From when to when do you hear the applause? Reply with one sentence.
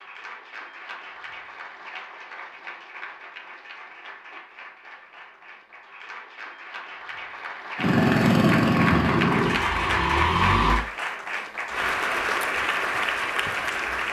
The applause can be heard from 0.0 to 14.0 s.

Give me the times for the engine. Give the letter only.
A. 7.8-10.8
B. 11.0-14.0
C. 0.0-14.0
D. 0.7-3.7
A.